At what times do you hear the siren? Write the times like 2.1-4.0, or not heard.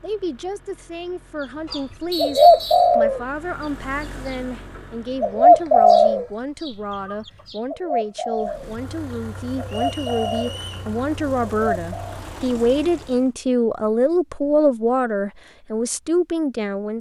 not heard.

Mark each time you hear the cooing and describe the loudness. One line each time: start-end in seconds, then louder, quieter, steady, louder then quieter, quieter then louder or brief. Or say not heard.
1.7-6.2 quieter then louder
7.5-8.8 brief
9.6-10.6 brief
11.4-12.2 brief.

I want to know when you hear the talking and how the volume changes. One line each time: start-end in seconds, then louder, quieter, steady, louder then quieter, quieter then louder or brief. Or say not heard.
0.0-16.9 louder.